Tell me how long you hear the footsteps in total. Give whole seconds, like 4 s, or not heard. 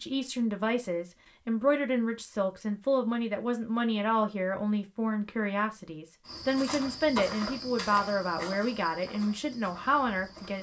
4 s.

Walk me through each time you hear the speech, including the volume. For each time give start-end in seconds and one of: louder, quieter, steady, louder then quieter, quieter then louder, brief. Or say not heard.
0.0-10.5 steady.